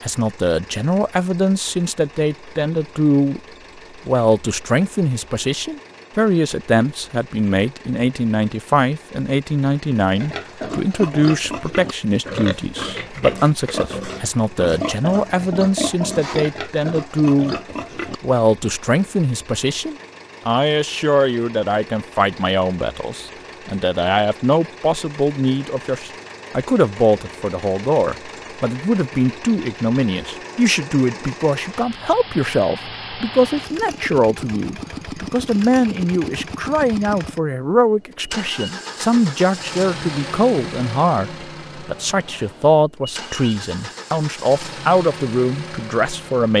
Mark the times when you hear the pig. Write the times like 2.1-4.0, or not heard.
10.2-18.2.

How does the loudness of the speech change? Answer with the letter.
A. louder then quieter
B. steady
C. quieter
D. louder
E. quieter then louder
B.